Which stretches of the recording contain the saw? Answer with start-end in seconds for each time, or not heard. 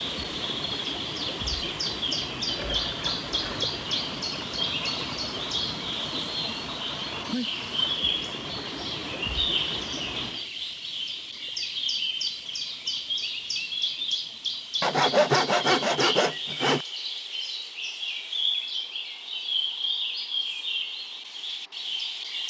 2.4-3.8, 14.8-16.9.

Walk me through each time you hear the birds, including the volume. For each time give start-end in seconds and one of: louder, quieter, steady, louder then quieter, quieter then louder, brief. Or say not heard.
0.0-22.4 steady.